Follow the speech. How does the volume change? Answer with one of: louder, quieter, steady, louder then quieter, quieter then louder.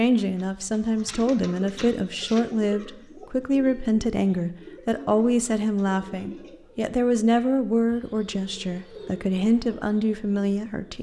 steady.